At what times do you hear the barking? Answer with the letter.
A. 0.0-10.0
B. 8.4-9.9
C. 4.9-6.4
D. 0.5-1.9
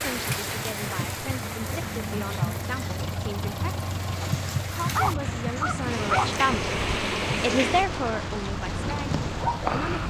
C.